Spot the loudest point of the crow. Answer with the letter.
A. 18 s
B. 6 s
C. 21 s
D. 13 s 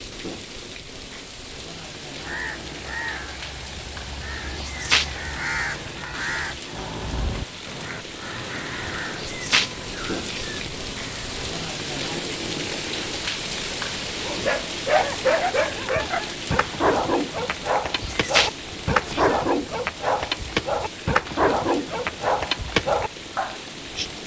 B.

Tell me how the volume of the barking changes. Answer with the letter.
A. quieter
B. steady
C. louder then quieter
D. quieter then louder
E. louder
B.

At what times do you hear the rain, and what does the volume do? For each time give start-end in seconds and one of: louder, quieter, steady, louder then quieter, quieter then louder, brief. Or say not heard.
0.0-24.2 louder then quieter.